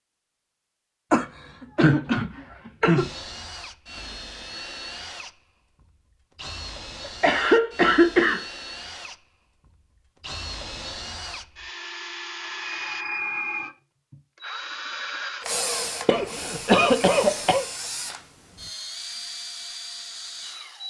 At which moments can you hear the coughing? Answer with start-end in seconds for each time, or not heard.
1.1-3.1, 7.0-8.4, 16.1-17.6.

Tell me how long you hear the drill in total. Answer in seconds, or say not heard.
18 s.